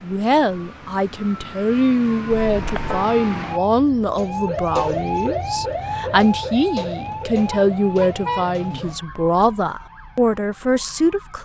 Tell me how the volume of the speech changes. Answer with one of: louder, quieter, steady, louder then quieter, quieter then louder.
steady.